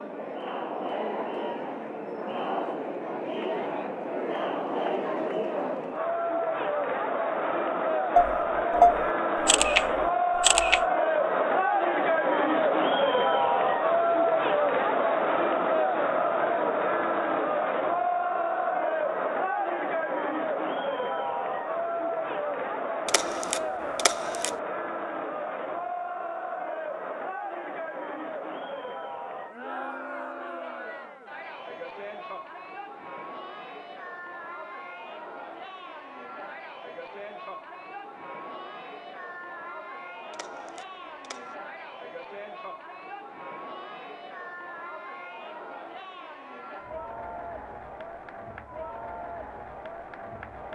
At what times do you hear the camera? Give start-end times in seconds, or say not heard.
8.2-10.8, 23.1-24.5, 40.3-41.5.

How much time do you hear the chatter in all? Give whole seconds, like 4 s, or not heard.
51 s.